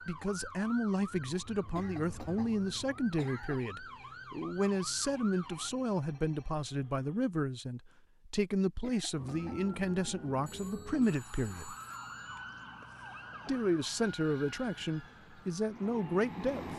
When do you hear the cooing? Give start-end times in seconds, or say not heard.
not heard.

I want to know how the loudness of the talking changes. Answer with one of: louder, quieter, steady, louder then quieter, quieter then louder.
steady.